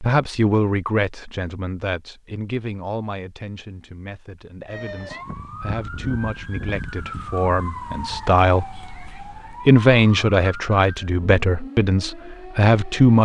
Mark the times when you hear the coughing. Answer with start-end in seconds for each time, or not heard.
not heard.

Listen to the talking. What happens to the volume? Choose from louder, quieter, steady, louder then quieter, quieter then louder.
quieter then louder.